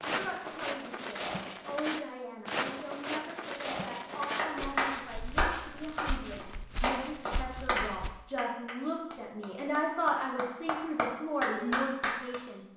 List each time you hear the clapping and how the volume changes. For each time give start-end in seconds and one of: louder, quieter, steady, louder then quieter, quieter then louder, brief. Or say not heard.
4.2-12.4 quieter then louder.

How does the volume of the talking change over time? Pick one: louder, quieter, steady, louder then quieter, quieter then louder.
louder.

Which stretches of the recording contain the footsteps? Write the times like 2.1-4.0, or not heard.
0.0-8.1.